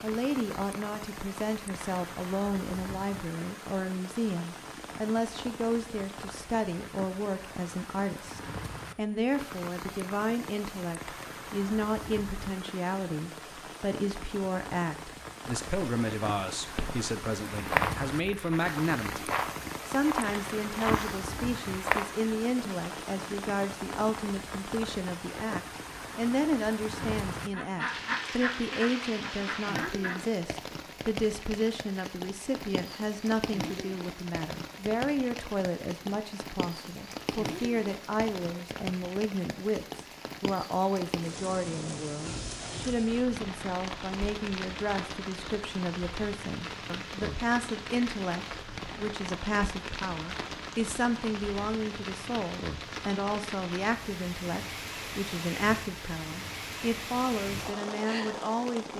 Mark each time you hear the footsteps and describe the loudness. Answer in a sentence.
You can hear the footsteps from 16.8 to 22.1 s, getting quieter then louder.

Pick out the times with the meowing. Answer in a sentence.
The meowing can't be heard in this clip.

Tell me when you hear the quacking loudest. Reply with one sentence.
The loudest moment of the quacking is at 28 seconds.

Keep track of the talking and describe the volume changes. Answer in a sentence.
The volume of the talking stays about the same.